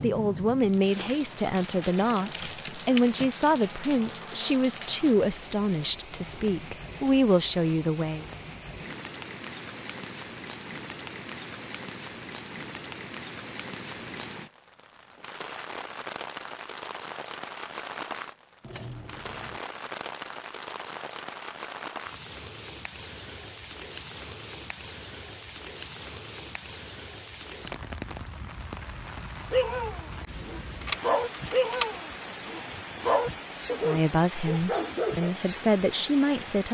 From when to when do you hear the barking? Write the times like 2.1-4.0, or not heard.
29.5-35.4.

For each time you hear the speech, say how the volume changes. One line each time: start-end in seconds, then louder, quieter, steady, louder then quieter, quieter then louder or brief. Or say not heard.
0.0-8.2 steady
33.9-36.6 brief.